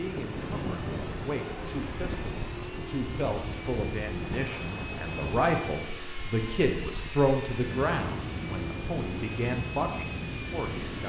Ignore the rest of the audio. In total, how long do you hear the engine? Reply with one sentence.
You can hear the engine for 11 seconds altogether.